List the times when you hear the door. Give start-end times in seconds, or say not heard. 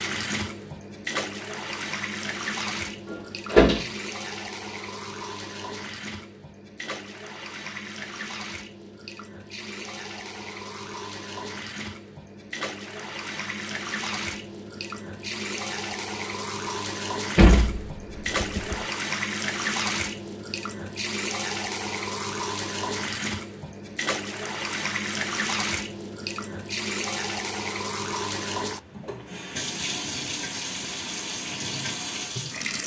3.1-3.9, 17.4-18.9.